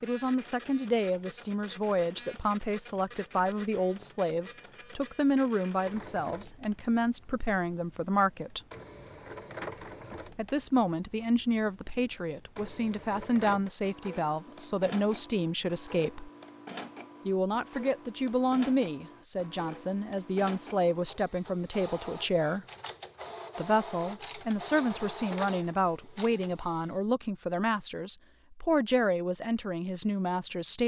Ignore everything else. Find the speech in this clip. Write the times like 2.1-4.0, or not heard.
0.0-8.6, 10.3-16.3, 17.2-22.6, 23.6-30.8.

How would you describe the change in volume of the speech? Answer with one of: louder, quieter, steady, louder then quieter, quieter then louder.
steady.